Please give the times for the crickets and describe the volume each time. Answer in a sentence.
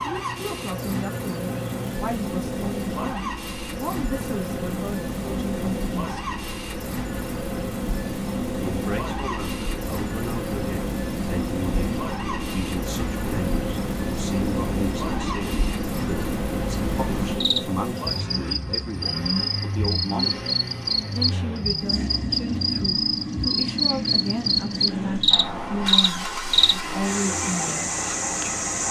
You can hear the crickets from 0.0 to 28.8 s, getting louder.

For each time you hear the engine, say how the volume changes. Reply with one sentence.
You can hear the engine from 0.0 to 28.8 s, at a steady volume.